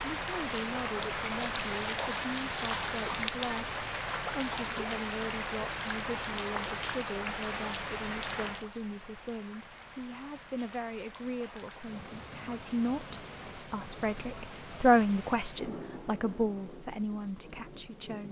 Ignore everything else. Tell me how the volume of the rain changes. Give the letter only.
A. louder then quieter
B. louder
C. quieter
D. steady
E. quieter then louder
C.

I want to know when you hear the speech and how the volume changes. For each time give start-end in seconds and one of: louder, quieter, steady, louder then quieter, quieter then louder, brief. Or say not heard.
0.1-18.2 louder.